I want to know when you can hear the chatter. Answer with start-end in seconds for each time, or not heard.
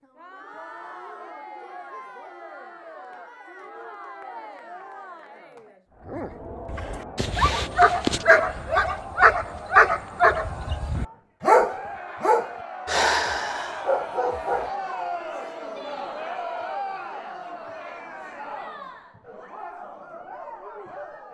0.0-21.2.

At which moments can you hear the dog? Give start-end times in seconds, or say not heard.
6.1-14.7.